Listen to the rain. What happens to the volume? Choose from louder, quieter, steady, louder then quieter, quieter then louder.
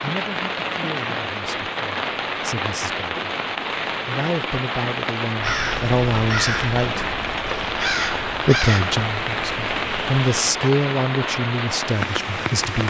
steady.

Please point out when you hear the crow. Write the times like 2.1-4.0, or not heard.
5.4-10.5.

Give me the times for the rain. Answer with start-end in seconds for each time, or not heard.
0.0-12.8.